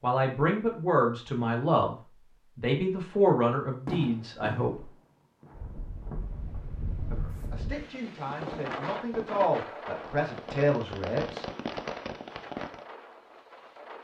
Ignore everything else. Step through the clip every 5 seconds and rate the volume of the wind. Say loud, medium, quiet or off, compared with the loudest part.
off, loud, medium.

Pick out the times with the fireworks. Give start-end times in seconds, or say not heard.
3.9-12.8.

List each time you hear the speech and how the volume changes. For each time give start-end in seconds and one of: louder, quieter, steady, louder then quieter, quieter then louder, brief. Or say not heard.
0.0-1.9 brief
2.5-4.9 brief
7.1-11.4 louder.